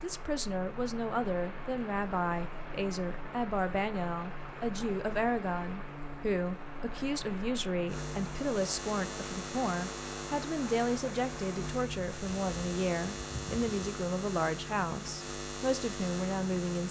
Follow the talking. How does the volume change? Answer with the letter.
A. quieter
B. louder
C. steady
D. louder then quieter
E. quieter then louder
C.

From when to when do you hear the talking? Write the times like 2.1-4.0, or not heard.
0.0-16.8.